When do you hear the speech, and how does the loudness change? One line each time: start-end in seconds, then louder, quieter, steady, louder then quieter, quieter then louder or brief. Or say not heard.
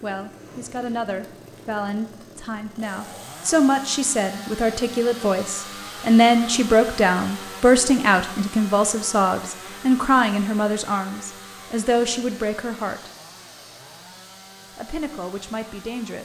0.0-13.1 louder then quieter
14.8-16.2 brief.